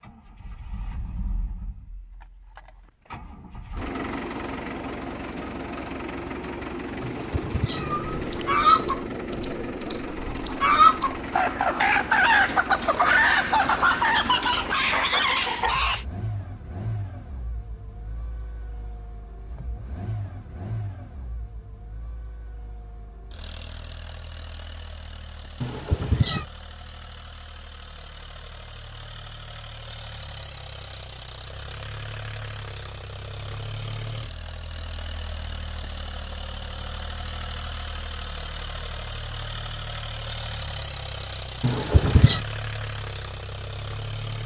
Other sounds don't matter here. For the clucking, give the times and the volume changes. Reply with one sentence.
You can hear the clucking from 8.1 to 16.1 s, at a steady volume.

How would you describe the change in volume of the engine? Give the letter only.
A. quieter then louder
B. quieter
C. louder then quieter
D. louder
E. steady
A.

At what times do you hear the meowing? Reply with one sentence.
The meowing can be heard from 7.0 to 8.9 s, from 25.6 to 26.4 s and from 41.6 to 42.4 s.